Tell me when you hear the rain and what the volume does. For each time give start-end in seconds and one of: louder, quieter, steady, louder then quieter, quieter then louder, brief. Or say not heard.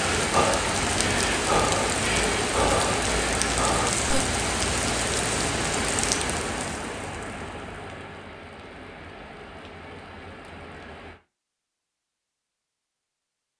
0.0-11.2 quieter.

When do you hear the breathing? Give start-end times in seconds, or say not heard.
0.0-4.2.